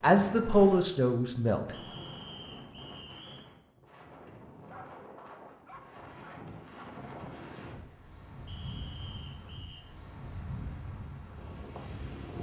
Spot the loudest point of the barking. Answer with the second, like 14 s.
5 s.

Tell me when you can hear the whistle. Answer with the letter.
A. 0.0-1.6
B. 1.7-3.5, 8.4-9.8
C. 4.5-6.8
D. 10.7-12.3
B.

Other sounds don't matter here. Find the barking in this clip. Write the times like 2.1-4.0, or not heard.
4.5-6.8.